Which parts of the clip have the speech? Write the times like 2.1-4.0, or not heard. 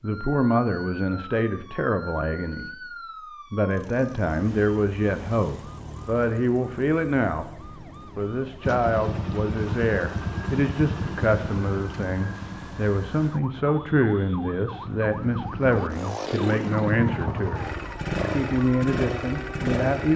0.0-2.9, 3.5-7.5, 8.2-17.7, 18.3-20.1.